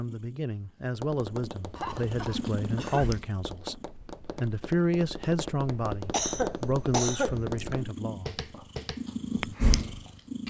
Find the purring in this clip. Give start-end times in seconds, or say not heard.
0.0-3.9, 7.4-10.4.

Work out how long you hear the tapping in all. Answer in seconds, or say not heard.
9 s.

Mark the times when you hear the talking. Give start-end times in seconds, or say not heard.
0.0-8.4.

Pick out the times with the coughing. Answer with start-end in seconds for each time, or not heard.
1.8-3.1, 6.1-7.3.